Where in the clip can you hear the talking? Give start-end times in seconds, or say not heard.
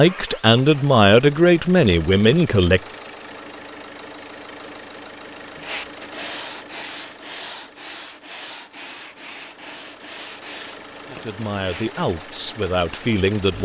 0.0-2.8, 11.1-13.6.